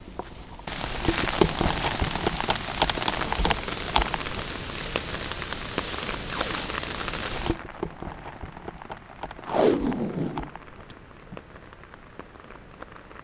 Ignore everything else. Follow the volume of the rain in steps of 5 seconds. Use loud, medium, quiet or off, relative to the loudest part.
loud, medium, quiet.